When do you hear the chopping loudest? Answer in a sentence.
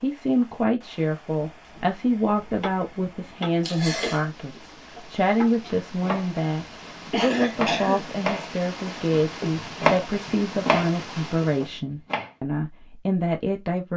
The volume of the chopping peaks at 10 seconds.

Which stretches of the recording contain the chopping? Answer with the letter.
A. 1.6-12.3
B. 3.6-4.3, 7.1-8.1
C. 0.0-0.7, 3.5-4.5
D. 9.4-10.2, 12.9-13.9
A.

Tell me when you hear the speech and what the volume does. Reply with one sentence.
You can hear the speech from 0.0 to 13.9 s, at a steady volume.